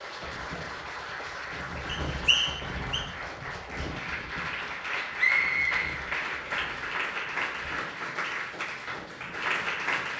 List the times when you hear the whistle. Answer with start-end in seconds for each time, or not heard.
1.9-3.0, 5.2-5.8.